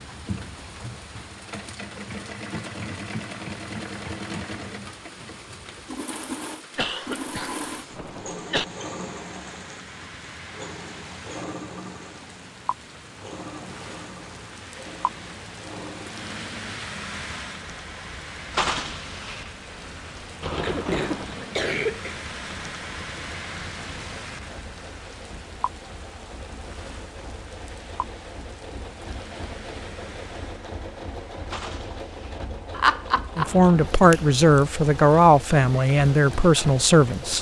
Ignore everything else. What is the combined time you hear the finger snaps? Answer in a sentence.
You can hear the finger snaps for 2 seconds altogether.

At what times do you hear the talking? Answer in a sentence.
The talking can be heard from 33.4 to 37.3 s.